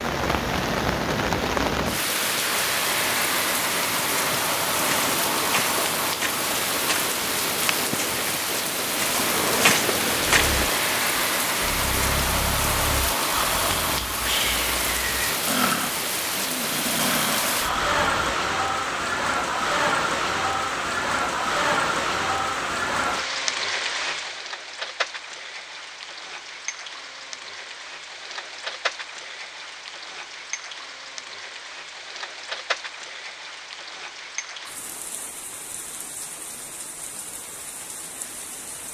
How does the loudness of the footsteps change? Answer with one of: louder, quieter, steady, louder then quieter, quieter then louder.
louder.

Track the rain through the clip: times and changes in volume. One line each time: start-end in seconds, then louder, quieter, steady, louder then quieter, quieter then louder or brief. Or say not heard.
0.0-38.9 quieter.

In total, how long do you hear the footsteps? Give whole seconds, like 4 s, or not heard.
6 s.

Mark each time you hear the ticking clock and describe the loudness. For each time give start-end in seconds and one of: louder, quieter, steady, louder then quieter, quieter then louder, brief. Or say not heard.
not heard.